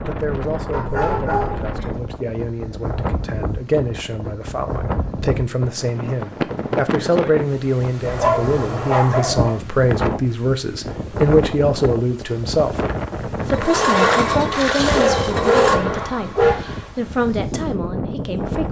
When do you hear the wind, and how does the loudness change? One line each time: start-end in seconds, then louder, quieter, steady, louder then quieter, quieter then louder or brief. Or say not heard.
0.0-18.6 steady.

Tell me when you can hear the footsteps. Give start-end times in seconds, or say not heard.
not heard.